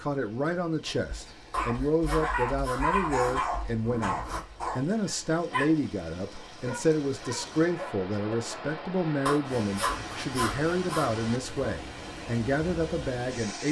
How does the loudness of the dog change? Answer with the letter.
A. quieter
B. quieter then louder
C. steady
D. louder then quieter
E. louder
A.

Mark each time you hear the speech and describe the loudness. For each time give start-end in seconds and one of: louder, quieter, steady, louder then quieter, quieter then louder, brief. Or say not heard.
0.0-13.6 steady.